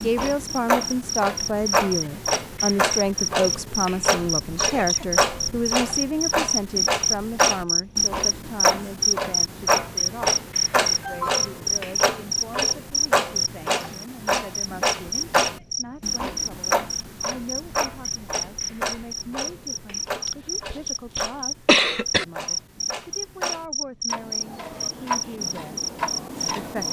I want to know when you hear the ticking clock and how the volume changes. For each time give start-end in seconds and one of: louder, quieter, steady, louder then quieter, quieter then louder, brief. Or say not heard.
0.0-26.8 quieter.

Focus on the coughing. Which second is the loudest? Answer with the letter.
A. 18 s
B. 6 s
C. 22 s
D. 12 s
C.